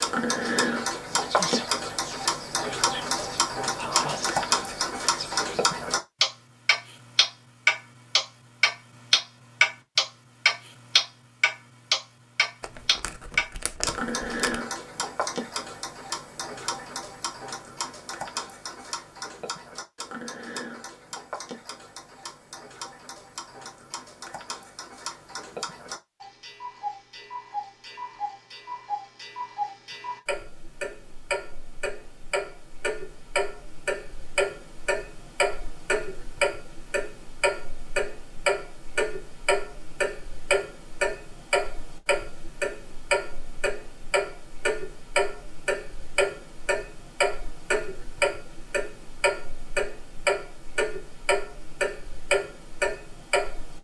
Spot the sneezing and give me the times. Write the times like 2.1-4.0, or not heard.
not heard.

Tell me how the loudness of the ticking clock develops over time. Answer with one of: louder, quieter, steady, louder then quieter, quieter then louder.
quieter then louder.